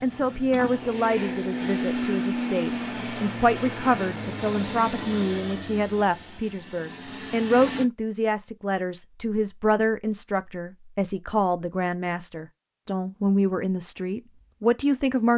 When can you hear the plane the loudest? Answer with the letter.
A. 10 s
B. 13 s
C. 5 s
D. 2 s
D.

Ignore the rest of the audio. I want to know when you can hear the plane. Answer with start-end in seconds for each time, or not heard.
0.0-7.8.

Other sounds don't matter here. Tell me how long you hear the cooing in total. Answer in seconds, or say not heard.
not heard.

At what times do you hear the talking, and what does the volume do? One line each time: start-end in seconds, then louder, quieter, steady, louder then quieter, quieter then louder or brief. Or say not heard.
0.0-15.3 steady.